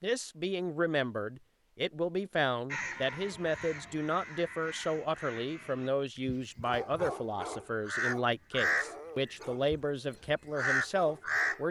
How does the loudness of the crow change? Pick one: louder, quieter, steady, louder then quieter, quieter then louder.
louder.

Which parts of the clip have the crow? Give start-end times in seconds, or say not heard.
2.7-11.6.